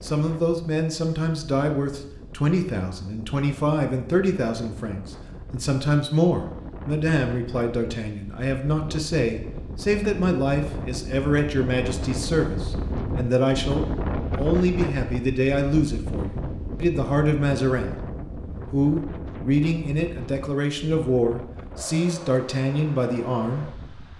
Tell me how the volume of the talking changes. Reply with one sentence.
The volume of the talking stays about the same.